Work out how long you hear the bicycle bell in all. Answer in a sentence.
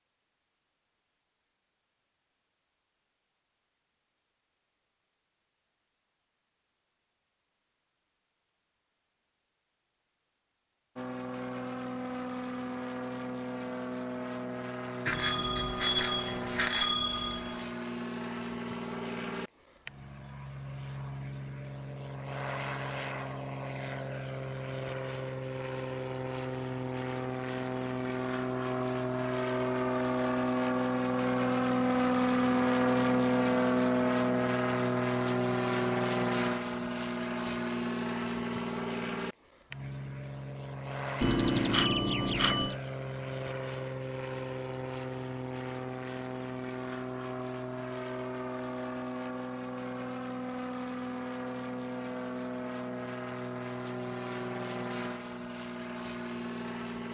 You can hear the bicycle bell for 4 seconds altogether.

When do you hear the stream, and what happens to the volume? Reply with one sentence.
The stream can't be heard in this clip.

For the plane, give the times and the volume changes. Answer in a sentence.
You can hear the plane from 10.9 to 57.0 s, getting louder then quieter.